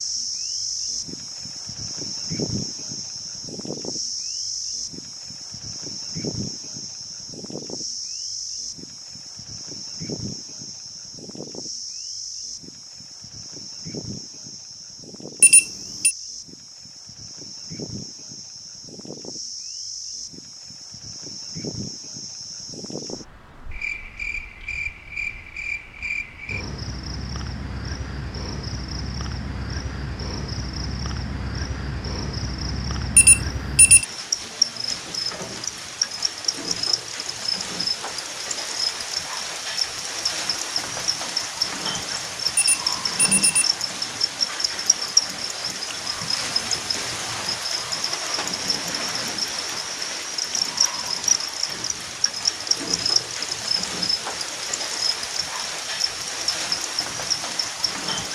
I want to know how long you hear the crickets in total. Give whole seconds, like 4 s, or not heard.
58 s.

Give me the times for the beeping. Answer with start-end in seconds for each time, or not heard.
15.4-16.1, 33.1-34.0, 42.5-43.7.